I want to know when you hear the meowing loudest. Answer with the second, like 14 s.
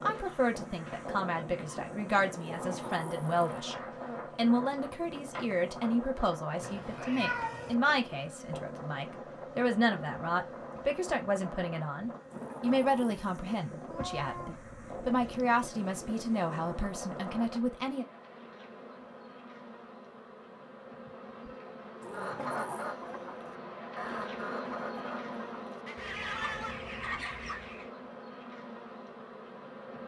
7 s.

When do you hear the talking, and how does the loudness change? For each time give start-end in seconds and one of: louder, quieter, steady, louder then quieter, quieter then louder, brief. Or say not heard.
0.0-18.1 steady.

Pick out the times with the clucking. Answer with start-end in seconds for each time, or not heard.
22.1-27.9.